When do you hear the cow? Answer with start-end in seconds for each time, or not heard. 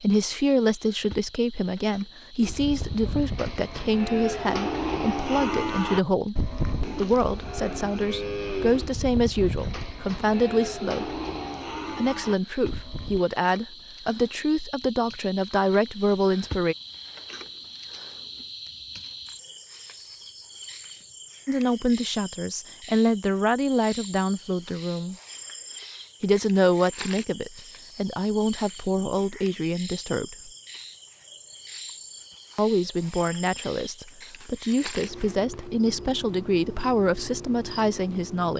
2.4-13.2.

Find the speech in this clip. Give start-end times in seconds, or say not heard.
0.0-6.3, 7.0-11.2, 11.9-16.8, 21.4-25.1, 26.2-30.4, 32.5-38.5.